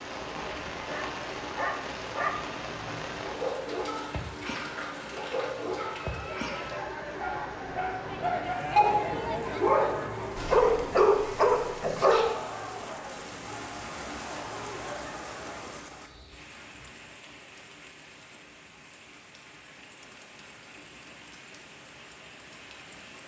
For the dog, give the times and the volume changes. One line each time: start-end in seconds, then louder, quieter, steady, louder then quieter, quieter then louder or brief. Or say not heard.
0.8-12.3 louder.